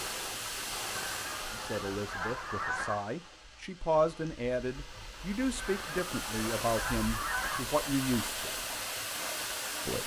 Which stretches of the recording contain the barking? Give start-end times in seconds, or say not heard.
not heard.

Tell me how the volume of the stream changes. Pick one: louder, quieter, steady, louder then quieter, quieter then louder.
quieter then louder.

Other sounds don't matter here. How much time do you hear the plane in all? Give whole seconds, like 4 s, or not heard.
not heard.